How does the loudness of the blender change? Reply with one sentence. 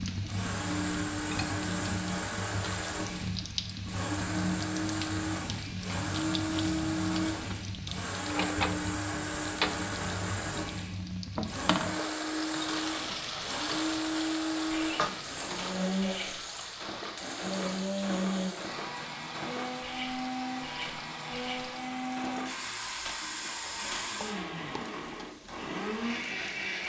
The loudness of the blender stays about the same.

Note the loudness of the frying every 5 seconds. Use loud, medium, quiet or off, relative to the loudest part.
loud, loud, loud, medium, quiet, quiet.